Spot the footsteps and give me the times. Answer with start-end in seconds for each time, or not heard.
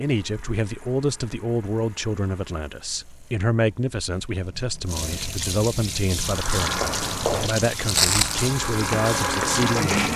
6.6-10.1.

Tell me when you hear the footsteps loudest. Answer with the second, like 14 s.
8 s.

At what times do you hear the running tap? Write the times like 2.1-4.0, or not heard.
0.1-10.1.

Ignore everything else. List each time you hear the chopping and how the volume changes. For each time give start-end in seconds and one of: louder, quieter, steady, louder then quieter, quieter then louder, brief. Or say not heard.
not heard.